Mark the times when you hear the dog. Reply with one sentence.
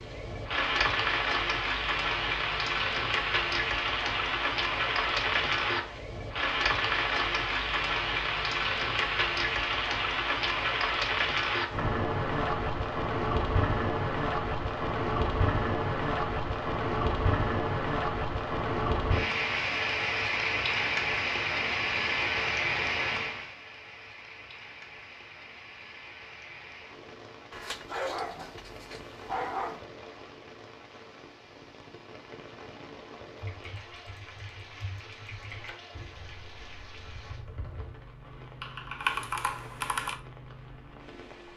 You can hear the dog from 27.5 to 29.9 s.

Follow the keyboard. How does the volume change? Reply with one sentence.
The loudness of the keyboard goes down, then up.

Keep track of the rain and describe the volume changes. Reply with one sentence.
The volume of the rain goes down.